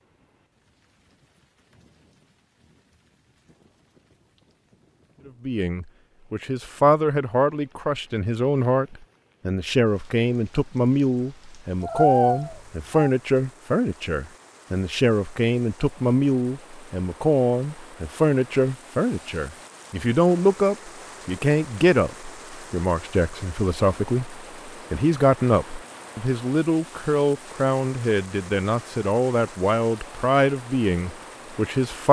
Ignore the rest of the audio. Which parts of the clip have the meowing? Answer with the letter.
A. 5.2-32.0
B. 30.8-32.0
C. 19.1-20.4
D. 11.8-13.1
D.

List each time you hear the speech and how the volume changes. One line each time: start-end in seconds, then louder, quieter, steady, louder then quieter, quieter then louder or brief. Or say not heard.
5.2-32.0 steady.